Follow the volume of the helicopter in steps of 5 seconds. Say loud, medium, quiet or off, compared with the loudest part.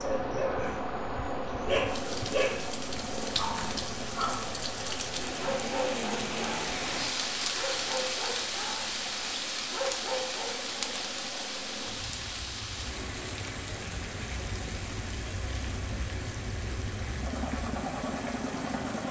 loud, medium, medium, loud.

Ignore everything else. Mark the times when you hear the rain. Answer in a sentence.
You can hear the rain from 0.0 to 19.0 s.